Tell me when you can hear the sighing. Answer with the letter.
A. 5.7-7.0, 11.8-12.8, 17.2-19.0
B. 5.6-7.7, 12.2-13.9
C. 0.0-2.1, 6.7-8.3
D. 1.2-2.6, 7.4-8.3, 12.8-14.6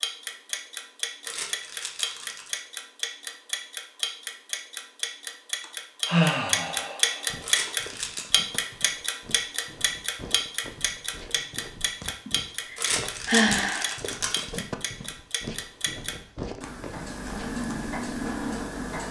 B.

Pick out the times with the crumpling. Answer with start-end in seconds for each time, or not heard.
1.2-2.6, 7.4-8.3, 12.8-14.6.